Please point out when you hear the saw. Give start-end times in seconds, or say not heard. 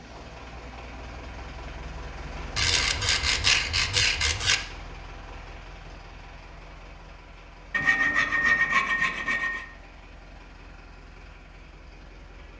2.5-4.5, 7.7-9.7.